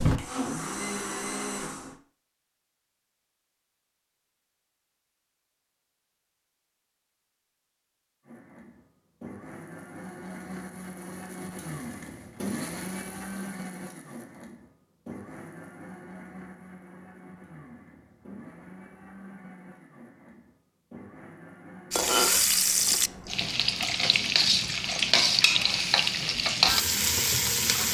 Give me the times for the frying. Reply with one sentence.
You can hear the frying from 21.9 to 27.8 s.